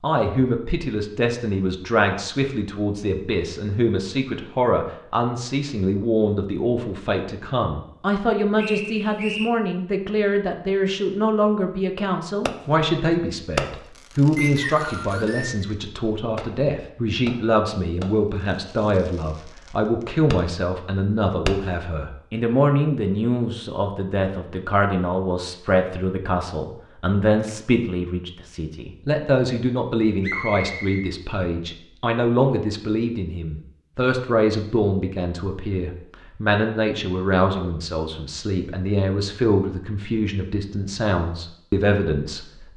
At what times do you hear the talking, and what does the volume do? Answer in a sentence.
The talking can be heard from 0.0 to 42.7 s, at a steady volume.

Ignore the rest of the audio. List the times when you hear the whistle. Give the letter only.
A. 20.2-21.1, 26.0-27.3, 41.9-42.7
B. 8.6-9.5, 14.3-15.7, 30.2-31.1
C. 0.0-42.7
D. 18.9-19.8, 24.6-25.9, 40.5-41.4
B.